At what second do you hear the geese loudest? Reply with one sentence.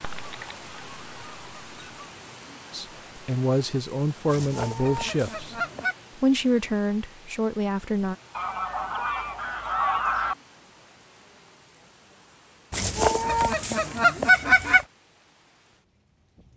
The loudest moment of the geese is at 14 seconds.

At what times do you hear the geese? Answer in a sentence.
The geese can be heard from 0.0 to 2.0 s, from 4.2 to 6.0 s, from 8.3 to 10.3 s and from 12.7 to 14.8 s.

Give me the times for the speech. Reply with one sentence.
The speech can be heard from 2.7 to 8.2 s.